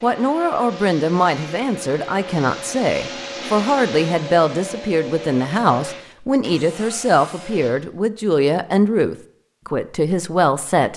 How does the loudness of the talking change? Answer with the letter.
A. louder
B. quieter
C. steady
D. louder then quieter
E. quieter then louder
C.